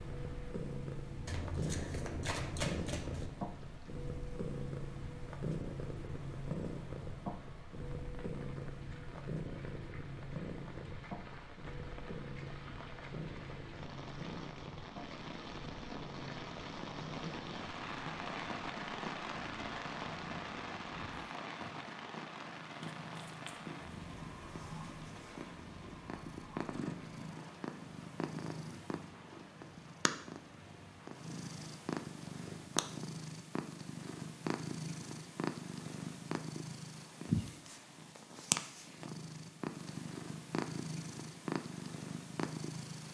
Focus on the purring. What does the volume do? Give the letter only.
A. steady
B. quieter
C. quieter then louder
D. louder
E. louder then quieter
C.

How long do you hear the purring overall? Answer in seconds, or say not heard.
43 s.